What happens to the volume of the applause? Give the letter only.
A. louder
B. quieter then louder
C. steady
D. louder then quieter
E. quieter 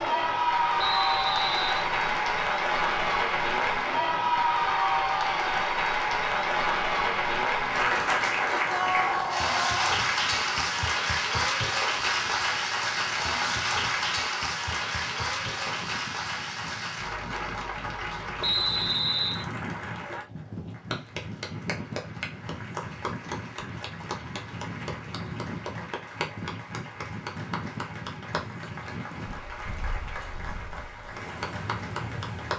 E.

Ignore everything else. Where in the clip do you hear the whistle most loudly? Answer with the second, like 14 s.
19 s.